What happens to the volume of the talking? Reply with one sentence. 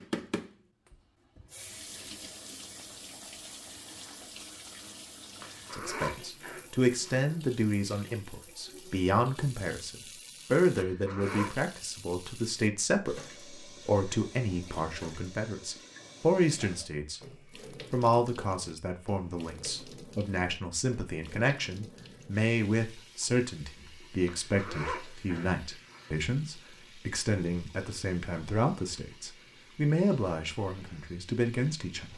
The volume of the talking stays about the same.